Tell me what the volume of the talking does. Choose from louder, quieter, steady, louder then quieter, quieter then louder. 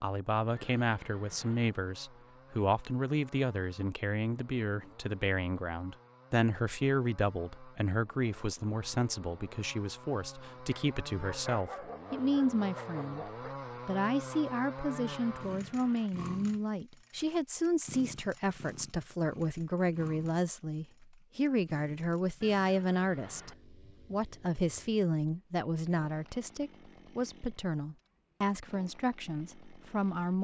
steady.